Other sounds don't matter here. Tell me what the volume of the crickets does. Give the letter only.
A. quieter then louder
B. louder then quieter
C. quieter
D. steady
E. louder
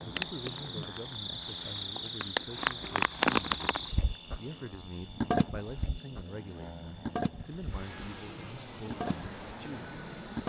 B.